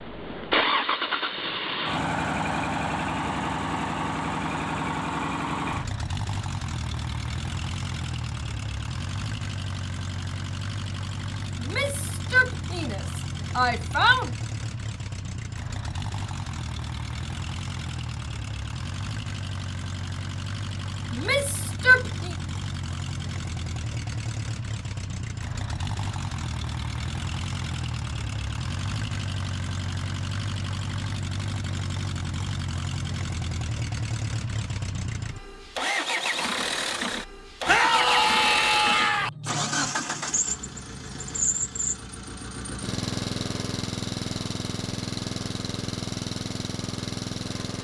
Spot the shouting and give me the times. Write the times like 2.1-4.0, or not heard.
11.6-14.3, 21.1-22.4, 37.6-39.3.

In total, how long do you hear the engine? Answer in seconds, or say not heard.
48 s.